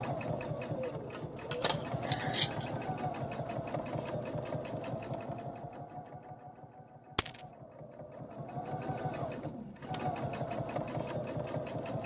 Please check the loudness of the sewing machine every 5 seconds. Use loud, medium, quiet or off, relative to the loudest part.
loud, medium, loud.